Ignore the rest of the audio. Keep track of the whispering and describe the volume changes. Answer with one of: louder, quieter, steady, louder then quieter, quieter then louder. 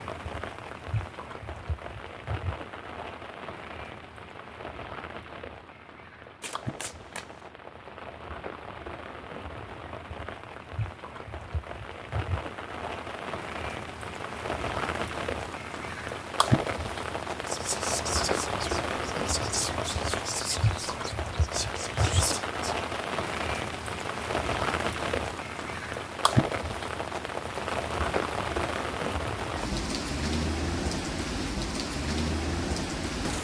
quieter then louder.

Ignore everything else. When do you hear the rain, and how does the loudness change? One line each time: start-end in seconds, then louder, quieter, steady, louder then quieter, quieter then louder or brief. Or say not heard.
0.0-33.3 louder.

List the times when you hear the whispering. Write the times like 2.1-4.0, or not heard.
17.4-22.8.